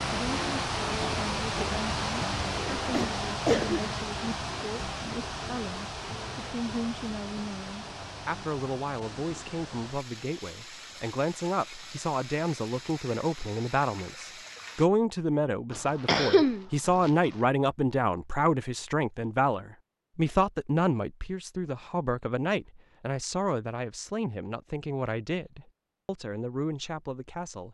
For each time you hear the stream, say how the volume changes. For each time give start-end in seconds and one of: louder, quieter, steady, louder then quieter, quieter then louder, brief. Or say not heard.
0.0-14.9 quieter.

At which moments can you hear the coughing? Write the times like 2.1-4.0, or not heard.
2.8-3.8, 15.7-17.1.